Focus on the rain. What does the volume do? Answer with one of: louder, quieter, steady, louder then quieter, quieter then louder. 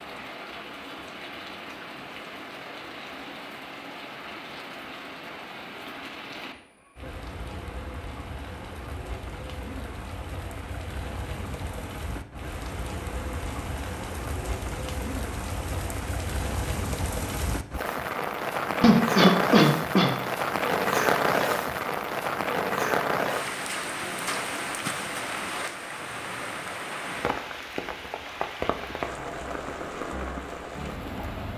louder then quieter.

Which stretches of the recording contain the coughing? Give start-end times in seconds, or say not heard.
18.8-20.1.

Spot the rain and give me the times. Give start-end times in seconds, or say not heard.
0.0-31.5.